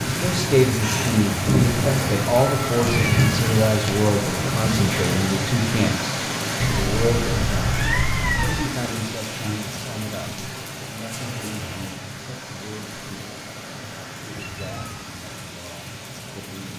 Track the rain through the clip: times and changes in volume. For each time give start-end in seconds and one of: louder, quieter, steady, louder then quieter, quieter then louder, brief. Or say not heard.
0.0-16.7 quieter.